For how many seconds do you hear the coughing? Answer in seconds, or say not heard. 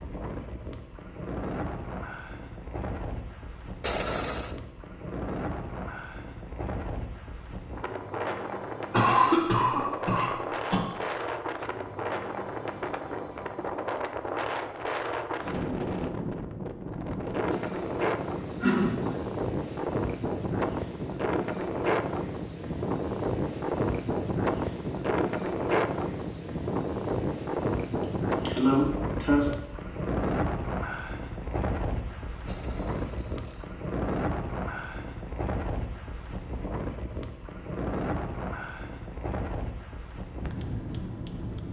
4 s.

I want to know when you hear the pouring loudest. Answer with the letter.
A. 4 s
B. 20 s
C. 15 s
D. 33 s
A.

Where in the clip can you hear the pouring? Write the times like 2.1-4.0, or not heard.
3.8-4.6, 17.5-19.9, 32.5-33.8.